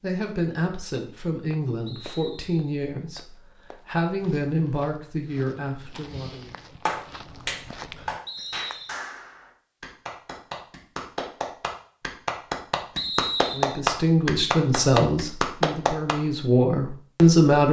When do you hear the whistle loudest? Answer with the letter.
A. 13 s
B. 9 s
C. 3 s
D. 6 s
A.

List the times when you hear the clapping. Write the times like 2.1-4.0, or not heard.
6.8-16.1.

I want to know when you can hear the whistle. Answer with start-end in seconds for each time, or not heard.
1.9-2.7, 8.2-8.9, 12.9-13.8.